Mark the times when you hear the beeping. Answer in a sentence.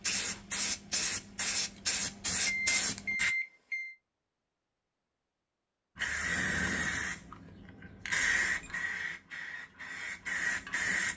You can hear the beeping from 2.5 to 4.0 s and from 8.2 to 8.8 s.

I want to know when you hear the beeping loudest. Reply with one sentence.
The loudest moment of the beeping is at 3 seconds.